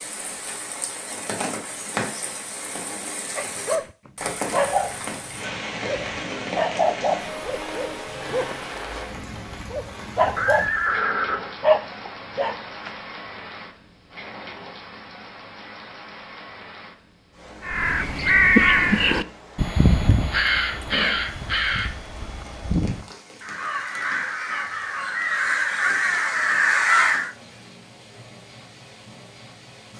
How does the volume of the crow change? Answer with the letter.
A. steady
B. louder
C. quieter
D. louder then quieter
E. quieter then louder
E.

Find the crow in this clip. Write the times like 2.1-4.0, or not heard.
17.6-27.3.